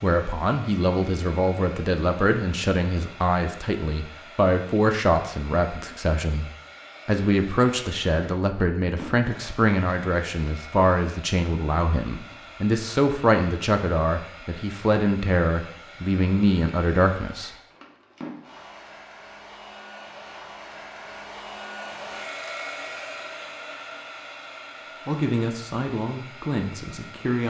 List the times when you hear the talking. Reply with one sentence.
The talking can be heard from 0.0 to 6.5 s, from 7.0 to 17.5 s and from 25.1 to 27.4 s.